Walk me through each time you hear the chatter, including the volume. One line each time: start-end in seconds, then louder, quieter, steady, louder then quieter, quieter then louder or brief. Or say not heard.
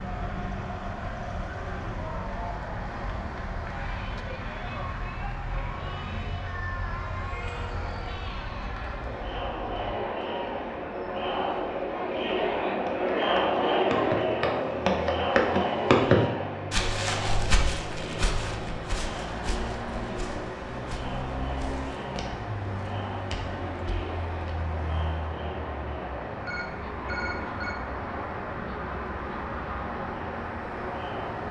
0.0-31.4 louder then quieter.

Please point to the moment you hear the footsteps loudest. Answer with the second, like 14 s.
16 s.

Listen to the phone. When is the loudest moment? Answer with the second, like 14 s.
27 s.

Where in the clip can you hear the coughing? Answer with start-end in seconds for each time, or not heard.
not heard.